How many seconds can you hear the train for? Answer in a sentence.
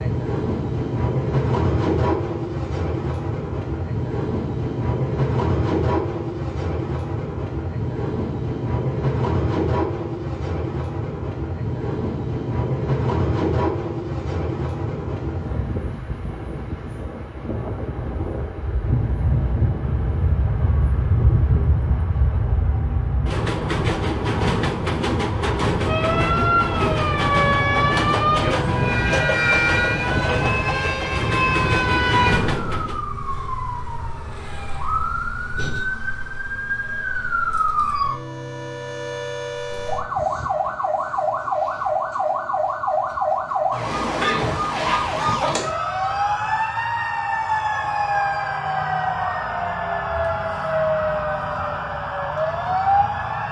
The train can be heard for 33 seconds in total.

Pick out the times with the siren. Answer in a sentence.
The siren can be heard from 25.9 to 53.4 s.